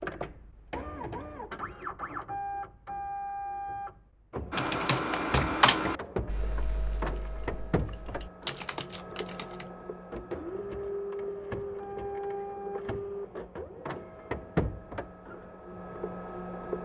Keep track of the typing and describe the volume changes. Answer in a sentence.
The volume of the typing goes down, then up.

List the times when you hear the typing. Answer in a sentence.
You can hear the typing from 4.5 to 9.7 s.